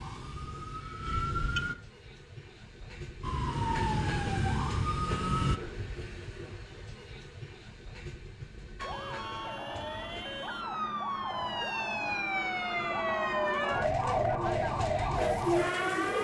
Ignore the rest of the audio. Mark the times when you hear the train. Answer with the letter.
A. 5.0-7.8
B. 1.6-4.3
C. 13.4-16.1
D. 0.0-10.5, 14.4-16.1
D.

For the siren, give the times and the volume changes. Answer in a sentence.
The siren can be heard briefly from 0.0 to 1.8 s; briefly from 3.2 to 5.6 s; and from 8.8 to 16.1 s, getting louder.